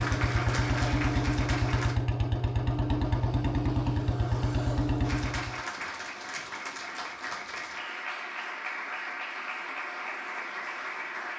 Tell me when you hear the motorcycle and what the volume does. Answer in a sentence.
You can hear the motorcycle from 0.0 to 5.6 s, at a steady volume.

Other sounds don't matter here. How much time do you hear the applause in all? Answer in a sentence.
You can hear the applause for 8 seconds altogether.